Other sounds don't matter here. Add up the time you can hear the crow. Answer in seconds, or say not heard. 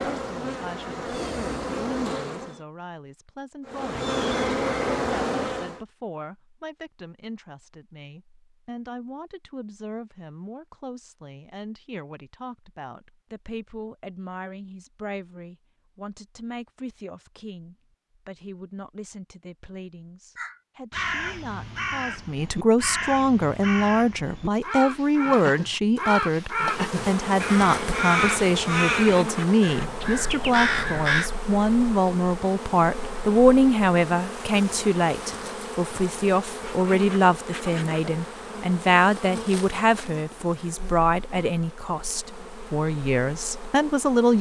11 s.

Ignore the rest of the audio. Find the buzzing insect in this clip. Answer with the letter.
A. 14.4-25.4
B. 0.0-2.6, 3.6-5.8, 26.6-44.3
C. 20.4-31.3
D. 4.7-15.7
B.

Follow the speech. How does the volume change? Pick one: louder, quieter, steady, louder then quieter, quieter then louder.
louder.